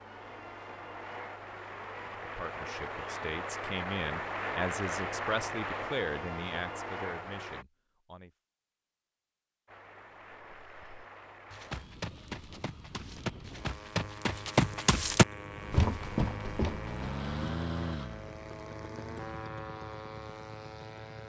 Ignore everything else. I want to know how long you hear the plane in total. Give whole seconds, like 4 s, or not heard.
19 s.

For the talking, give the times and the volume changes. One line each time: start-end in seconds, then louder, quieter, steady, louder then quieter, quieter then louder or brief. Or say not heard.
2.2-8.3 louder then quieter.